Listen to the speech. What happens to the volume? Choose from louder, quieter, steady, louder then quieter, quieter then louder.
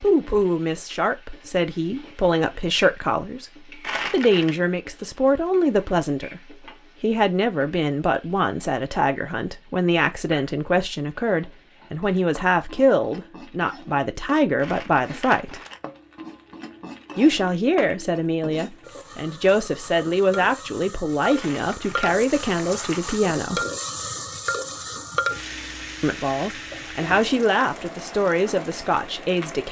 steady.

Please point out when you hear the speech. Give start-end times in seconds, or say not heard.
0.0-15.6, 17.1-23.6, 26.0-29.6.